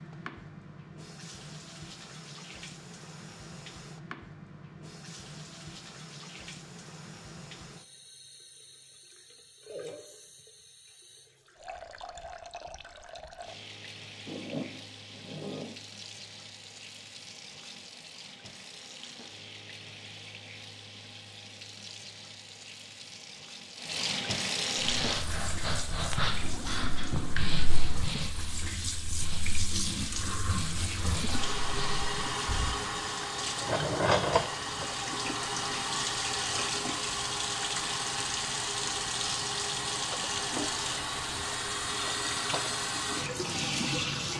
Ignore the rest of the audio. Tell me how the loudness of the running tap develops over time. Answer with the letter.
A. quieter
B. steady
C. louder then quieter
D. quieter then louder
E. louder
E.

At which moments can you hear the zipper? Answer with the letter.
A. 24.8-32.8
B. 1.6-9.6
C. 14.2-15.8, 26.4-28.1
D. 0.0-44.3
C.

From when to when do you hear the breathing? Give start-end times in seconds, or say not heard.
24.8-32.8.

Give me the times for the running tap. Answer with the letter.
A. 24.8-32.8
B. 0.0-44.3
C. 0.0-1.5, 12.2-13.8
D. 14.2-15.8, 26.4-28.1
B.